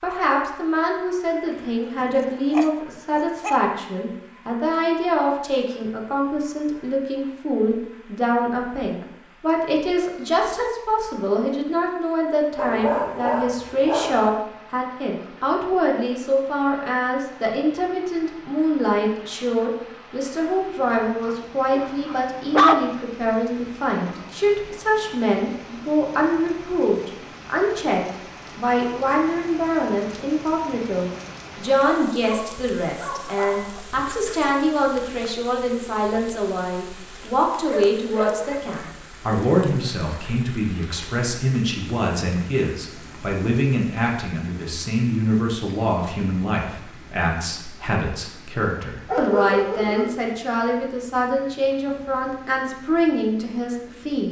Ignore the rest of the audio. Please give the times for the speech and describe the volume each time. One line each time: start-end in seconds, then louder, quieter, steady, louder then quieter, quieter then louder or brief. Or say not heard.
0.0-54.2 steady.